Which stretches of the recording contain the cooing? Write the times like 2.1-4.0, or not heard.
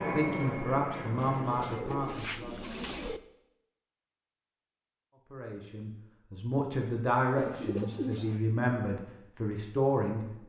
1.1-3.2, 7.3-8.4.